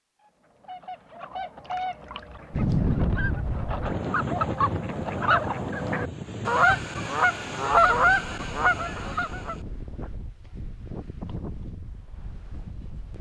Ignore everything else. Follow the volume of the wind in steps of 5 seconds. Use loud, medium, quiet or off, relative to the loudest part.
loud, medium, quiet.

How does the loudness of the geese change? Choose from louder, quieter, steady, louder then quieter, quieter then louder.
louder.